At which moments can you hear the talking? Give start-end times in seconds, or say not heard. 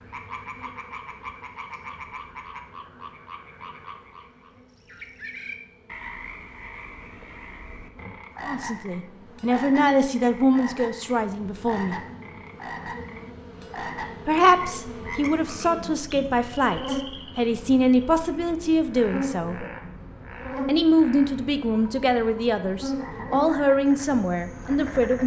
8.4-11.9, 14.2-19.6, 20.6-25.2.